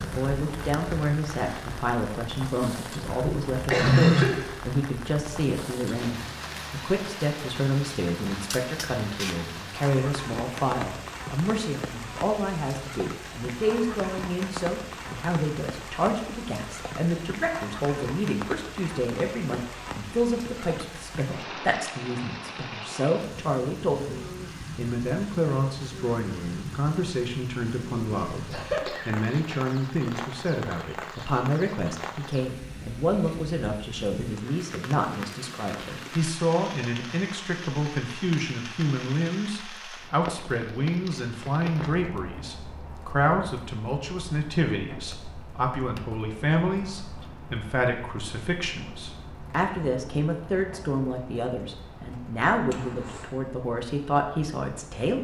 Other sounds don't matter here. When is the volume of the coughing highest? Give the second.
4 s.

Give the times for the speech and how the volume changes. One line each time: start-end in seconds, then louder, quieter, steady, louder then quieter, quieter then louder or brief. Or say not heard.
0.0-55.2 steady.